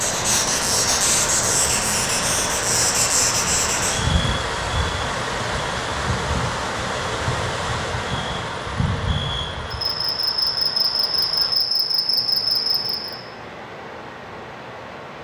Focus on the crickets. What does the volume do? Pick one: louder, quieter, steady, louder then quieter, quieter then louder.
quieter then louder.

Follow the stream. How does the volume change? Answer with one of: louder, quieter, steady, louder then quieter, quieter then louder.
quieter.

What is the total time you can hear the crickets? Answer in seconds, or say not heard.
13 s.